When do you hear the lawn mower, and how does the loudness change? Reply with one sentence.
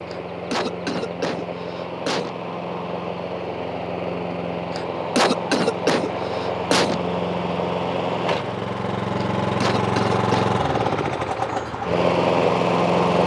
You can hear the lawn mower from 0.0 to 13.2 s, getting louder.